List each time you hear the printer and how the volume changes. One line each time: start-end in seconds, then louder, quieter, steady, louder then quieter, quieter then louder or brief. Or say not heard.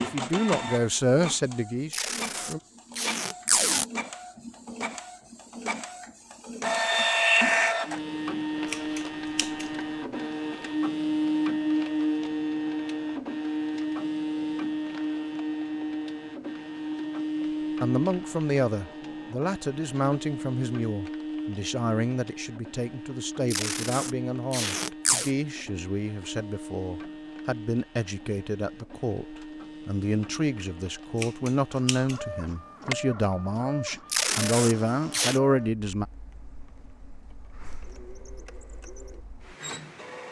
0.0-40.2 quieter.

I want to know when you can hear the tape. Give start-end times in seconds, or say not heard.
1.9-3.9, 23.5-25.3, 34.0-35.4.